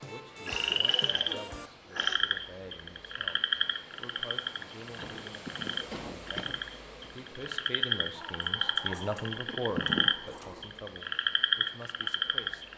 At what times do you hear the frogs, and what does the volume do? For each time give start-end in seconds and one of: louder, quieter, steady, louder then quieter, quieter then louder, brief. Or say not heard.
0.0-12.7 quieter then louder.